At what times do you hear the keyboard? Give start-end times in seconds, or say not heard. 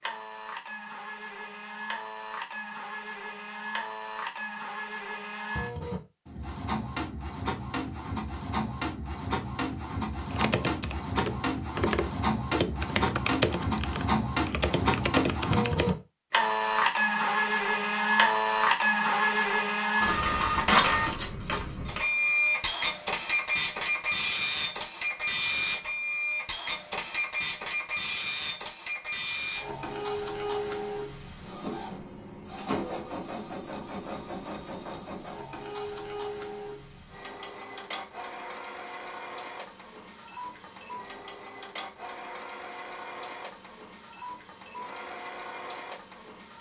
10.3-15.9.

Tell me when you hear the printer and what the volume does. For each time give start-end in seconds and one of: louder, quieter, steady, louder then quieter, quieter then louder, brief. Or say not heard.
0.0-46.5 louder then quieter.